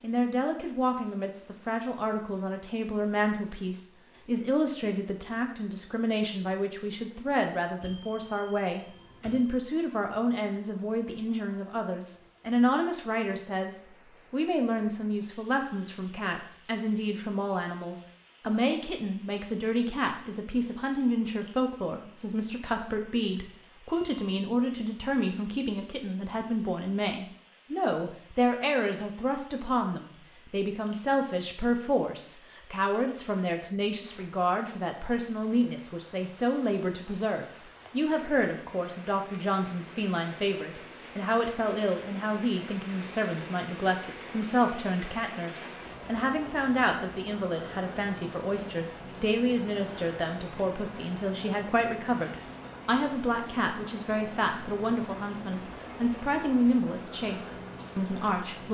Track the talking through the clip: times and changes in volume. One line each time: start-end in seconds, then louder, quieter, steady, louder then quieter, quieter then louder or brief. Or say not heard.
0.0-58.6 steady.